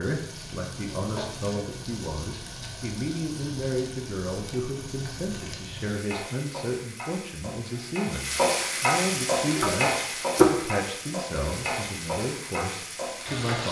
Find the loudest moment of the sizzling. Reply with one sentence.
The volume of the sizzling peaks at 9 seconds.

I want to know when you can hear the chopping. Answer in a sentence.
You can hear the chopping from 9.4 to 10.5 s.